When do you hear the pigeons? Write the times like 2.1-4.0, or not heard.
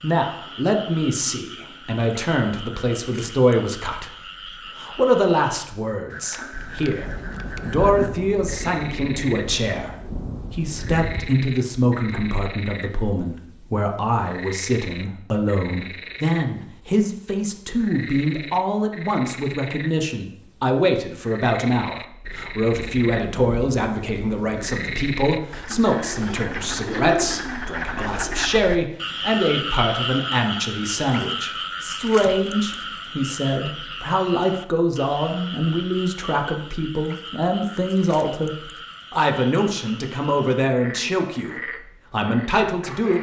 25.6-28.6.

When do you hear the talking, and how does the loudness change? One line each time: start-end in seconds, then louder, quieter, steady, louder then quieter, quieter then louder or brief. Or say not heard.
0.0-43.1 steady.